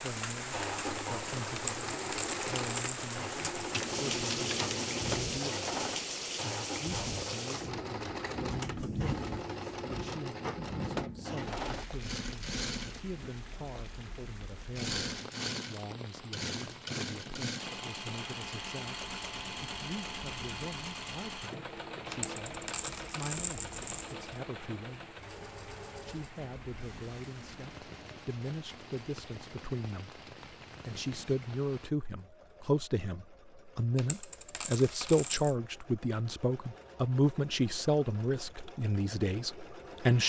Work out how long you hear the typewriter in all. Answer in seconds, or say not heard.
2 s.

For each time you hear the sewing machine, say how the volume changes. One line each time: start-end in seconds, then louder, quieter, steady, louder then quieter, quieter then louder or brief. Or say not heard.
0.0-40.2 quieter.